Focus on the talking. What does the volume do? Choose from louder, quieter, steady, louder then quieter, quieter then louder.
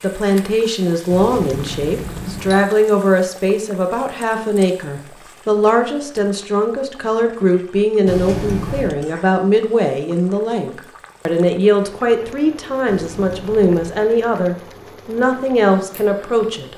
steady.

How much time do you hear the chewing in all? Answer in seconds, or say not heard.
not heard.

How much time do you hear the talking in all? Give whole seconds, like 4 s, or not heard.
17 s.